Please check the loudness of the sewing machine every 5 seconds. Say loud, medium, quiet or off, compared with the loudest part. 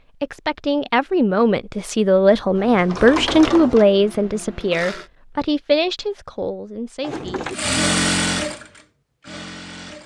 medium, loud.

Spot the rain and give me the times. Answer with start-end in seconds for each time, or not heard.
not heard.